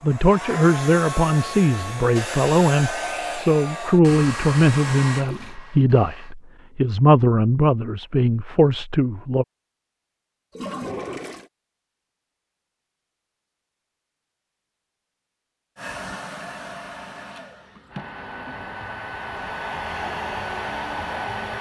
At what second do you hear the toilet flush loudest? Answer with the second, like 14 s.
11 s.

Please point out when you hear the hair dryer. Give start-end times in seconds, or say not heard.
0.0-6.3, 15.8-21.5.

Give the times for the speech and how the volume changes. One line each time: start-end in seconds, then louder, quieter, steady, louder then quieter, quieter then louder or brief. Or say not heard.
0.0-9.4 steady.